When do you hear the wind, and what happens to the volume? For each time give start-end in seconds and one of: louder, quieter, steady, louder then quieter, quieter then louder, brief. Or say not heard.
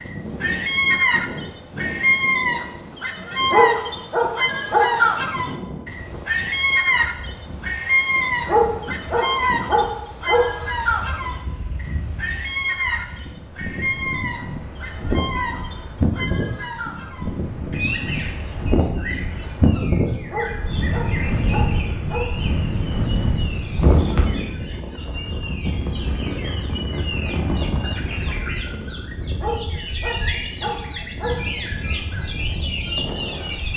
0.0-33.7 louder then quieter.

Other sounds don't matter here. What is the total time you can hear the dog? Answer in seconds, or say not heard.
7 s.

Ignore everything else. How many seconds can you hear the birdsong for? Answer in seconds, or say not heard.
34 s.